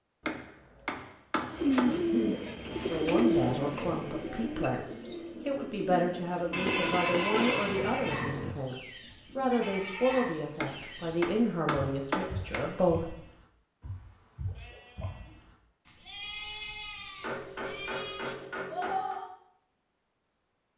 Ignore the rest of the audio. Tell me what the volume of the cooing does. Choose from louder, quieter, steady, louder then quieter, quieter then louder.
quieter.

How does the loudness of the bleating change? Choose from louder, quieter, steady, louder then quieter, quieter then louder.
quieter then louder.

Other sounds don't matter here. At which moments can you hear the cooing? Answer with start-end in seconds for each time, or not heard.
1.5-7.2.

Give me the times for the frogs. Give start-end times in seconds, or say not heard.
not heard.